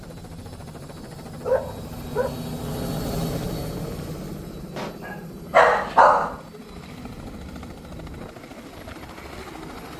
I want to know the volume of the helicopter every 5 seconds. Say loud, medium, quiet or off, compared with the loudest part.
loud, medium.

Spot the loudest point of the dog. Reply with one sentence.
The loudest moment of the dog is at 6 seconds.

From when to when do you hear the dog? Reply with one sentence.
The dog can be heard from 1.4 to 2.4 s and from 5.0 to 6.4 s.